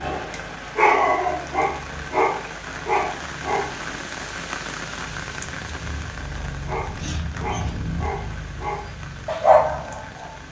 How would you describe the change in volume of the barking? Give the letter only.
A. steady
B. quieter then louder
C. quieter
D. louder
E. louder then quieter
B.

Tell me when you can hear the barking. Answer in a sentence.
The barking can be heard from 0.0 to 3.8 s and from 6.7 to 10.4 s.